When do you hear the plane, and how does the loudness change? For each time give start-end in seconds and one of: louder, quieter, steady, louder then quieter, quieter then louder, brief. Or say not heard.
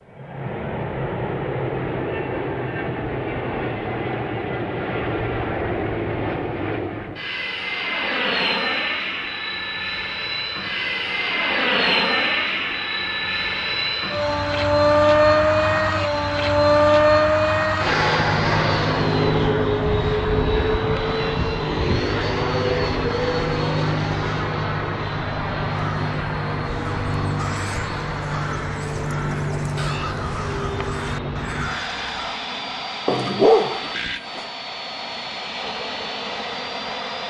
0.0-37.2 louder then quieter.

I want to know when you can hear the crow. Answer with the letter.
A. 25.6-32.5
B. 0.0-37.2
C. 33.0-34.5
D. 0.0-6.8
A.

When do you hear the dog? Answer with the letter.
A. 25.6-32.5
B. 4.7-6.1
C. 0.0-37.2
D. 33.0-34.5
D.